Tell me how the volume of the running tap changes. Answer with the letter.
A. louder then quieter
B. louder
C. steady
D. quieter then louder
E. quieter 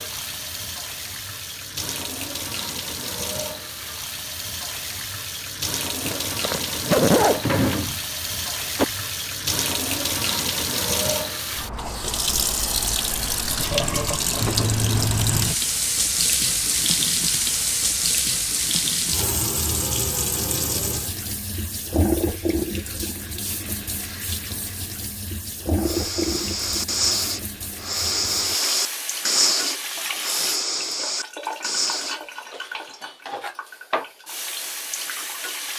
A.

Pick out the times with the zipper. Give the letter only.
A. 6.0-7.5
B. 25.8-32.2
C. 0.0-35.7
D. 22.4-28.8
A.